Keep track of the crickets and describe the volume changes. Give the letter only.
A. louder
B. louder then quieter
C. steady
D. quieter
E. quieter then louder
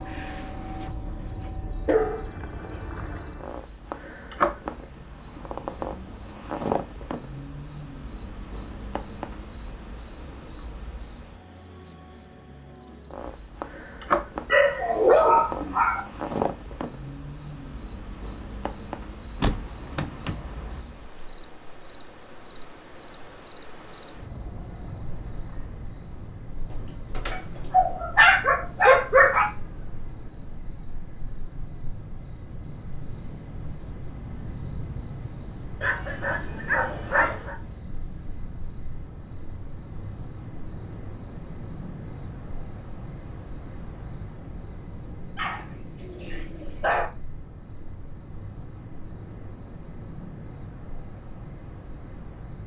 D.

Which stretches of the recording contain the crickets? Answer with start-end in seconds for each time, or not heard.
0.0-52.6.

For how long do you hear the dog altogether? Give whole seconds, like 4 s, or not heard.
9 s.